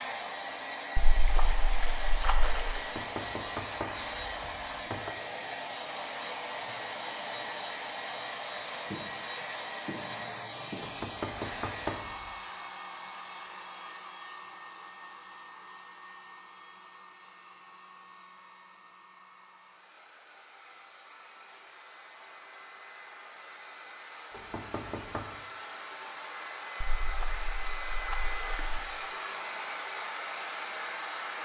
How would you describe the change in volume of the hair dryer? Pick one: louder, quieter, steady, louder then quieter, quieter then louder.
quieter then louder.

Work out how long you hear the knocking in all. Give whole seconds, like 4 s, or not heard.
5 s.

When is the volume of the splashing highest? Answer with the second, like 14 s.
2 s.